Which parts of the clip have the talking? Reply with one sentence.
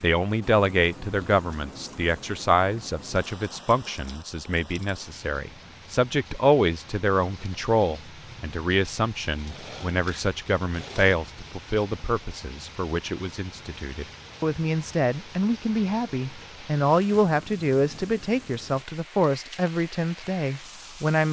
The talking can be heard from 0.0 to 21.2 s.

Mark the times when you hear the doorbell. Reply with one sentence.
The doorbell can't be heard in this clip.